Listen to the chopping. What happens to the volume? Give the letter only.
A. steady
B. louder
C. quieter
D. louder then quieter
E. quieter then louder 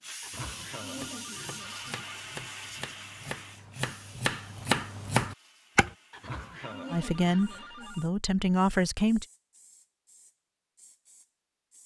B.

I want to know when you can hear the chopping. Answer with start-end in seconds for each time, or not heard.
0.6-5.9.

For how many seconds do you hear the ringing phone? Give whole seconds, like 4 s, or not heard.
4 s.